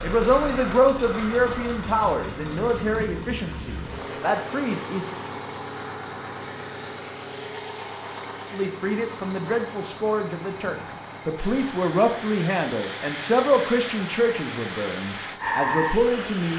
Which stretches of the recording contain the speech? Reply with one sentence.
You can hear the speech from 0.0 to 5.2 s and from 8.5 to 16.5 s.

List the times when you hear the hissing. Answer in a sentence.
You can hear the hissing from 0.0 to 5.3 s and from 10.7 to 16.5 s.